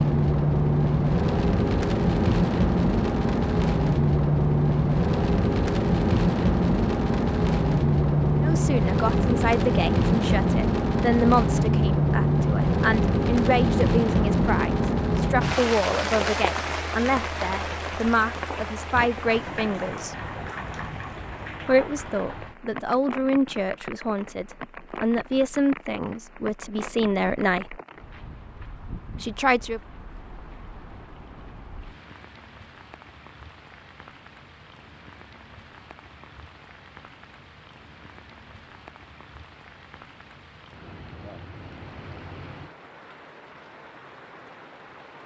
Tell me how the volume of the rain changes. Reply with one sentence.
The loudness of the rain goes down.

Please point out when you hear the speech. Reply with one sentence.
The speech can be heard from 8.4 to 20.1 s, from 21.6 to 27.8 s and from 29.2 to 29.8 s.